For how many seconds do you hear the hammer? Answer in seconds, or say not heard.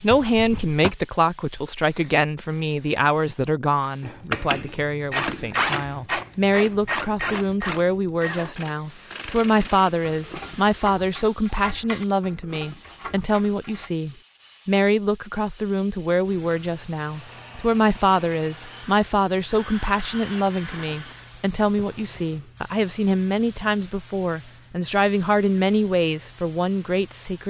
not heard.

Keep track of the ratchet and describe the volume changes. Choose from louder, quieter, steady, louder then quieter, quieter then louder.
quieter.